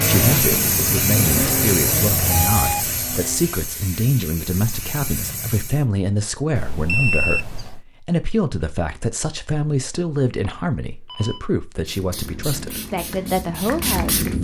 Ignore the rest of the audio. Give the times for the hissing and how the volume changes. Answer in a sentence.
The hissing can be heard from 0.0 to 5.8 s, getting quieter; and briefly from 11.8 to 14.3 s.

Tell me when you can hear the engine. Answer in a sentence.
You can hear the engine from 0.0 to 3.5 s.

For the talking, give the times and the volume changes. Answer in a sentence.
The talking can be heard from 0.1 to 14.3 s, at a steady volume.